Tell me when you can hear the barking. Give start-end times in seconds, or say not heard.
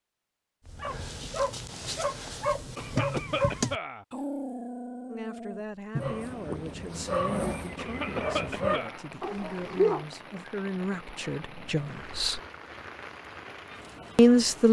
0.7-10.1.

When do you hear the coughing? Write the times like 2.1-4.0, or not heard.
2.8-4.0, 7.8-9.0.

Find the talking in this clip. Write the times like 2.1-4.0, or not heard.
5.0-12.4, 14.2-14.6.